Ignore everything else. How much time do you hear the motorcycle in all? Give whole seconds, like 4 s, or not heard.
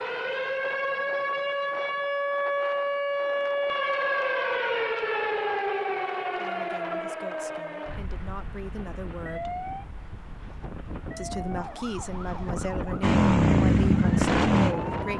2 s.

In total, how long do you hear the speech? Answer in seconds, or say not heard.
7 s.